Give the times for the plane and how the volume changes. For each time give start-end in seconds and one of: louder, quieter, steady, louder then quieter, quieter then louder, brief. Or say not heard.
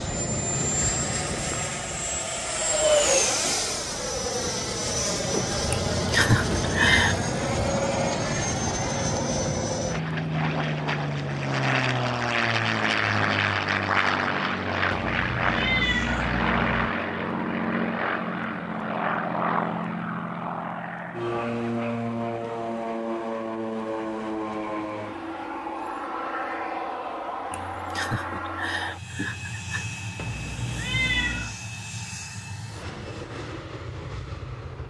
0.0-34.8 quieter.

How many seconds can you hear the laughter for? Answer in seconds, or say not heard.
4 s.